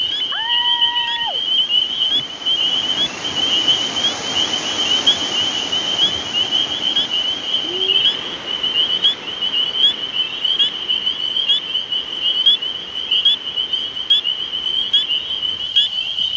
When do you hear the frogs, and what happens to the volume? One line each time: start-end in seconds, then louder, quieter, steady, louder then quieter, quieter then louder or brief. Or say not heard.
0.0-16.3 steady.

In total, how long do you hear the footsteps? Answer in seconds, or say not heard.
not heard.